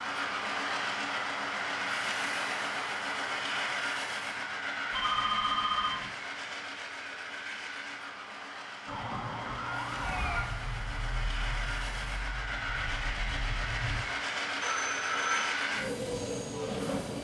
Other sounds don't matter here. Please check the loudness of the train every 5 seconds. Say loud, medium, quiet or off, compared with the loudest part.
loud, medium, loud, loud.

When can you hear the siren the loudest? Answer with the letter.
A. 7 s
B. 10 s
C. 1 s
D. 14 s
B.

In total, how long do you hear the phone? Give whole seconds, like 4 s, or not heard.
2 s.